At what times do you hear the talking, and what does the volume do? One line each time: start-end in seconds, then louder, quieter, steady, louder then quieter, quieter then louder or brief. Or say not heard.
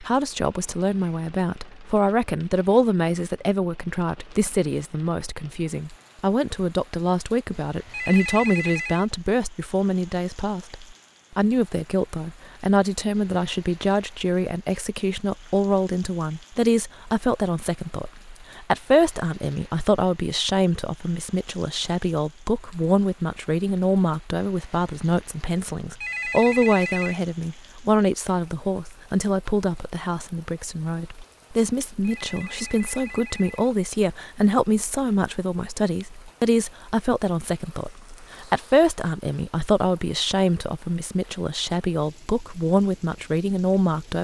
0.0-44.1 steady.